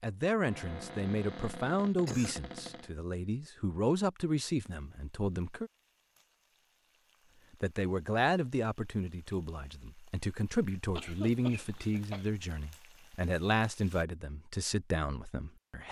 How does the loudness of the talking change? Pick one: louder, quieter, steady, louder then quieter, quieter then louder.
steady.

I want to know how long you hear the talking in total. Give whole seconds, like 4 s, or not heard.
14 s.